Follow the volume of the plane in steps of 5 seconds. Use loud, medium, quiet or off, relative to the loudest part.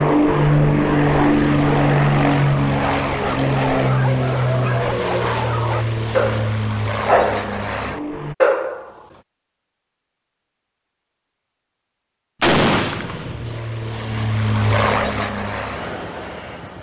loud, medium, medium, medium.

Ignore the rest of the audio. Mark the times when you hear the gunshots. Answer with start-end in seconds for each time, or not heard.
12.4-13.6.